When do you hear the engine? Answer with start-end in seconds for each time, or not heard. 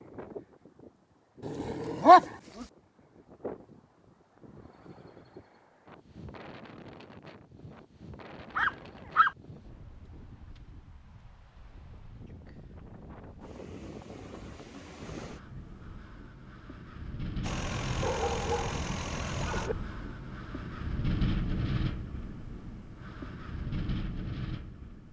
17.4-19.7.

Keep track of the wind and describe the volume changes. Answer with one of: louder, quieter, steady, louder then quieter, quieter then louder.
louder.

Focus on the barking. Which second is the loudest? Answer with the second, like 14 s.
2 s.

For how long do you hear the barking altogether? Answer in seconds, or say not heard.
4 s.